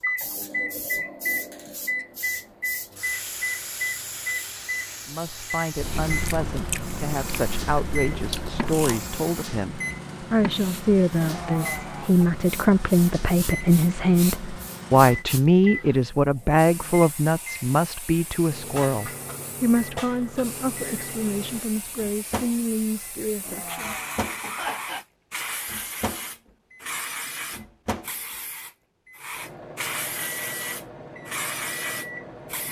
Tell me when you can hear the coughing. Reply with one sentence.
You can hear the coughing from 11.2 to 12.3 s and from 23.4 to 25.1 s.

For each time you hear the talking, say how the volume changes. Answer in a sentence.
The talking can be heard from 5.0 to 23.9 s, getting louder then quieter.